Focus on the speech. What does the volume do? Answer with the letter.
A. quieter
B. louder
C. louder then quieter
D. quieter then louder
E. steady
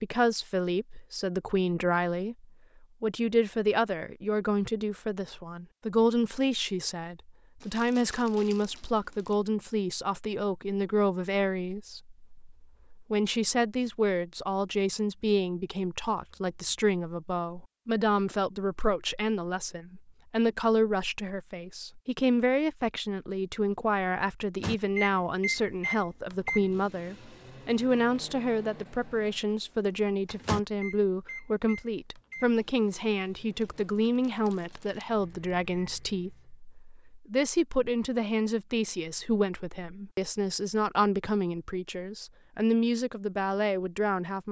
E.